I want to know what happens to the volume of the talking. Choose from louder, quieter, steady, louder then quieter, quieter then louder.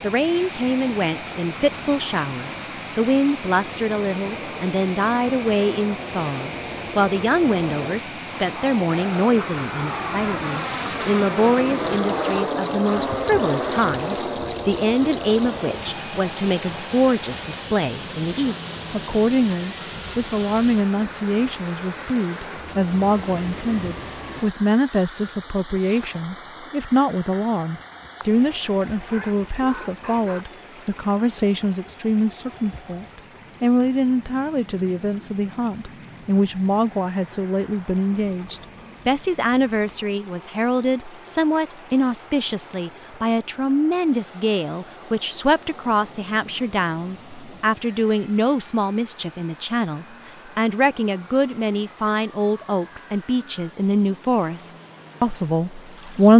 steady.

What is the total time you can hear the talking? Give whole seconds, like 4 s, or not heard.
56 s.